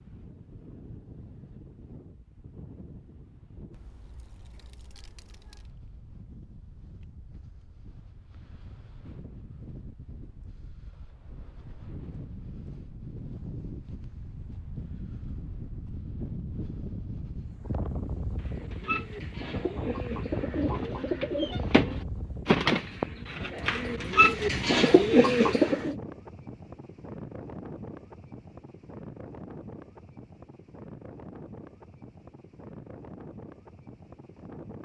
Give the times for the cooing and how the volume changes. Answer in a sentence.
You can hear the cooing from 18.6 to 25.9 s, getting louder.